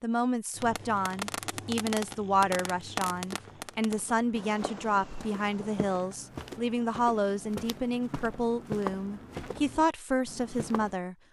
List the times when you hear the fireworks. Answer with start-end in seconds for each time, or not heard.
0.5-6.0.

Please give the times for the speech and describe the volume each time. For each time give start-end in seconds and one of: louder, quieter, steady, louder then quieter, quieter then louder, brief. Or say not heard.
0.0-11.2 steady.